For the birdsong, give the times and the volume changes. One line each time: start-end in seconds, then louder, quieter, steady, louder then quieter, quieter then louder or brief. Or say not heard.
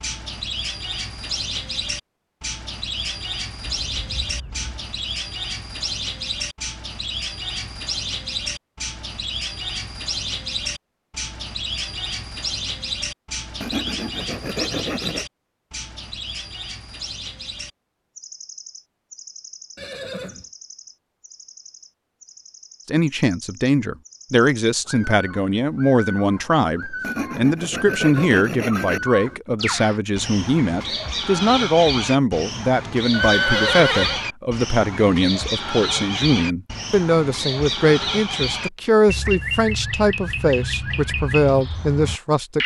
0.0-42.6 quieter then louder.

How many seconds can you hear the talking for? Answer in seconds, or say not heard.
20 s.